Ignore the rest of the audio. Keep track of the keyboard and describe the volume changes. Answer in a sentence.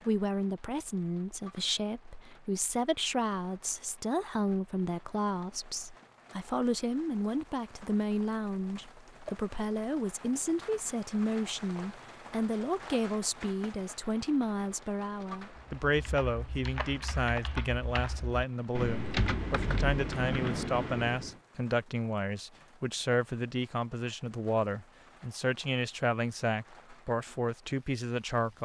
The loudness of the keyboard goes up.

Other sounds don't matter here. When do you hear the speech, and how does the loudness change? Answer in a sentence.
The speech can be heard from 0.1 to 28.6 s, at a steady volume.